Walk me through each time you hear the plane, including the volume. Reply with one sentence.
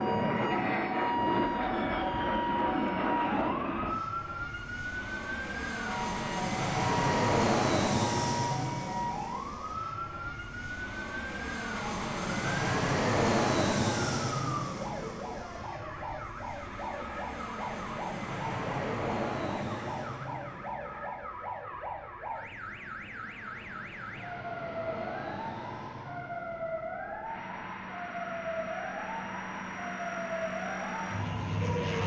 You can hear the plane from 0.0 to 32.0 s, getting quieter.